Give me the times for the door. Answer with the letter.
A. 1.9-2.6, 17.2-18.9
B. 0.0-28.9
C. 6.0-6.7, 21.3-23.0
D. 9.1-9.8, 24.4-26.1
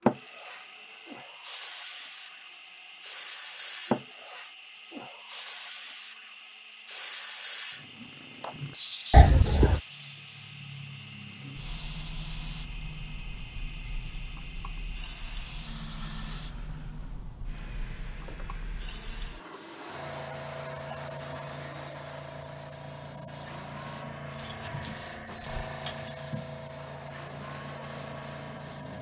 D.